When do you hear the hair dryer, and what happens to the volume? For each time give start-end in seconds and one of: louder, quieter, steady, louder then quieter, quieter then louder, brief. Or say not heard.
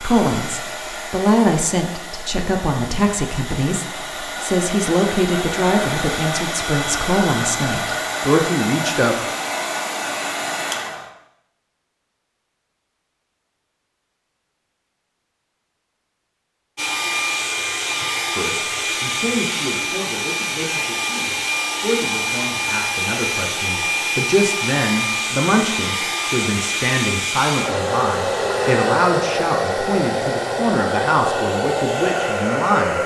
0.0-11.1 louder
16.8-33.0 steady.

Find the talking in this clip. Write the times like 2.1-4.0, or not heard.
0.0-9.2, 18.3-33.0.